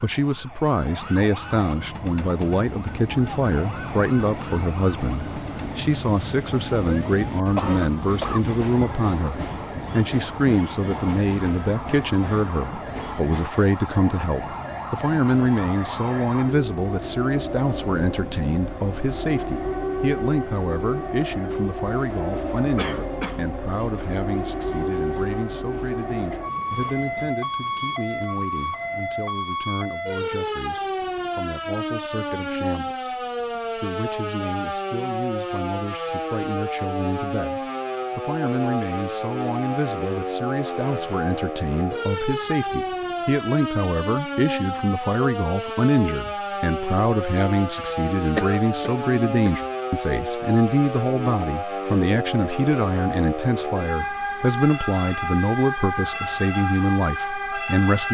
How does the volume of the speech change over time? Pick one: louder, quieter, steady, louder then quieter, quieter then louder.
quieter then louder.